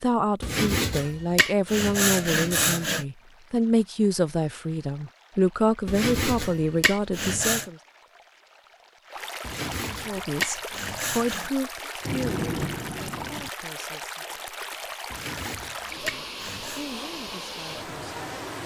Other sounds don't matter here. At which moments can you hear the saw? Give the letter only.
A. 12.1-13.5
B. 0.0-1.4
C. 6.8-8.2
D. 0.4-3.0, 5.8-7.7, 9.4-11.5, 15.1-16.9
D.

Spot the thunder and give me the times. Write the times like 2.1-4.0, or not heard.
12.1-13.5.